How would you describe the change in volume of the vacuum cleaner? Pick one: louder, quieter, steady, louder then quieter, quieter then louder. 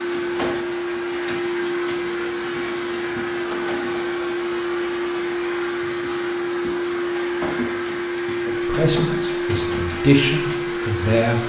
steady.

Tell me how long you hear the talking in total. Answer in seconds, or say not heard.
3 s.